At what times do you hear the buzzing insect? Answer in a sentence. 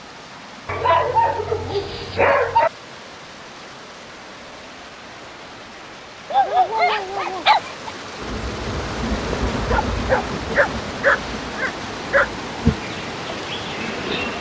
The buzzing insect can be heard from 8.2 to 14.3 s.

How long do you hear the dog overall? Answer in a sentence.
The dog can be heard for 6 seconds in total.